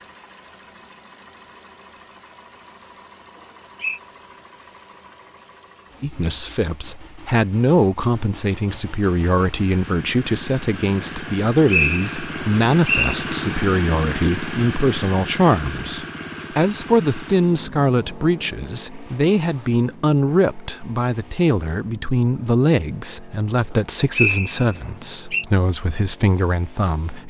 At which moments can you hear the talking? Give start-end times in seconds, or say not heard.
6.0-27.2.